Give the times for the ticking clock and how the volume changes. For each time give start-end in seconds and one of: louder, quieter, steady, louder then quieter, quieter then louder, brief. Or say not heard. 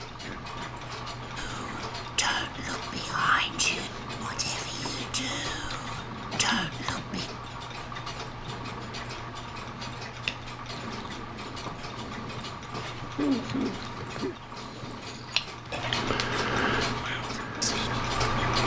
0.0-18.6 louder.